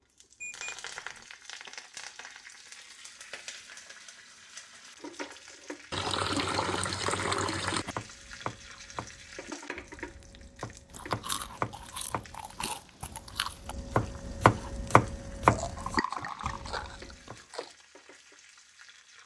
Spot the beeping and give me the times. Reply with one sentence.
The beeping can be heard from 0.4 to 1.2 s.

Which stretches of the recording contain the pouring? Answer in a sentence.
You can hear the pouring from 5.9 to 8.0 s and from 15.8 to 17.3 s.